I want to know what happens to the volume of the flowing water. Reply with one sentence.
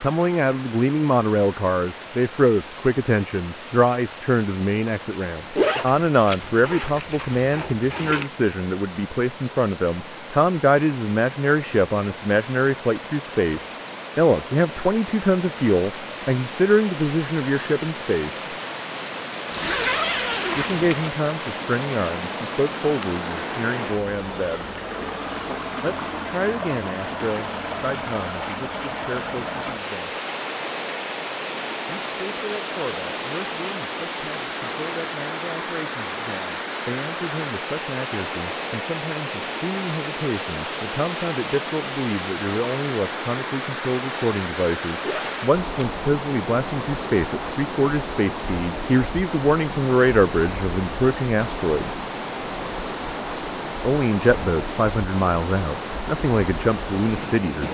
The volume of the flowing water goes up.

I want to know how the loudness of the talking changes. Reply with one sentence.
The loudness of the talking goes down, then up.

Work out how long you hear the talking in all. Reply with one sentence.
You can hear the talking for 51 seconds altogether.